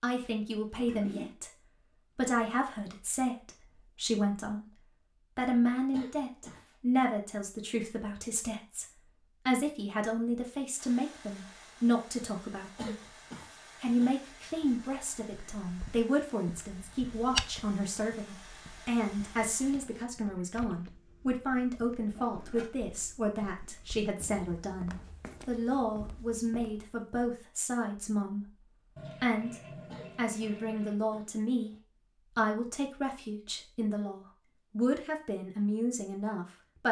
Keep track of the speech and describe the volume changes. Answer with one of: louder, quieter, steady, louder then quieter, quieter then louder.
steady.